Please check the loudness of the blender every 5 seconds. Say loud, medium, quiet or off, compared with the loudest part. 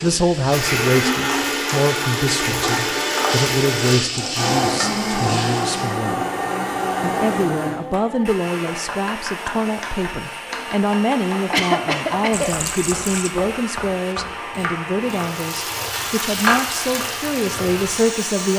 loud, loud, medium, medium.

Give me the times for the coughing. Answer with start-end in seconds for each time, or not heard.
11.5-12.5.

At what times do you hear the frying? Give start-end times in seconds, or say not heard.
0.0-6.0, 15.0-18.5.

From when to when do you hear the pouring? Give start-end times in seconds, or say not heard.
12.3-13.3.